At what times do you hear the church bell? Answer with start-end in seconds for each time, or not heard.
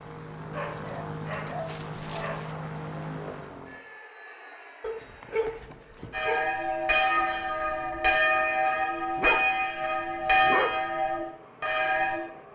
6.1-12.2.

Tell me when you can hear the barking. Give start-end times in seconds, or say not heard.
0.5-2.5, 4.8-6.5, 9.2-10.7.